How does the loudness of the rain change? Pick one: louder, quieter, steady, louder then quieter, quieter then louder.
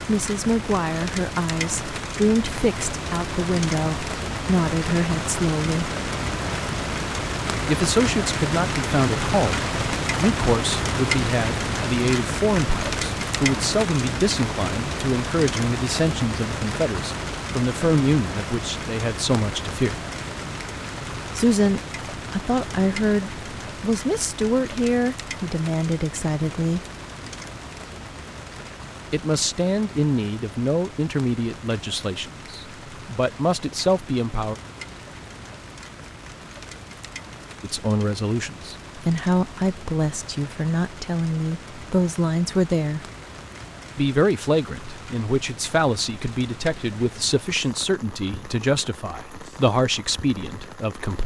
quieter.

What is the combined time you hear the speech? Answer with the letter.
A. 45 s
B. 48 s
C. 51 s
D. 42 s
D.